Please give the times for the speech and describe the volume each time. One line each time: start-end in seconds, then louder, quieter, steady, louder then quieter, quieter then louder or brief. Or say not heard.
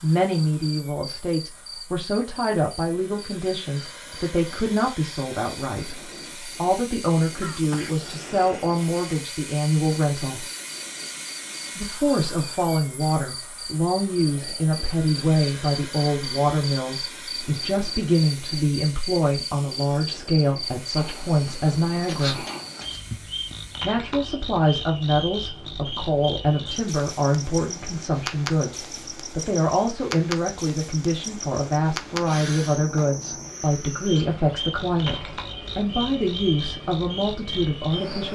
0.0-10.4 steady
11.8-22.4 steady
23.8-38.3 steady.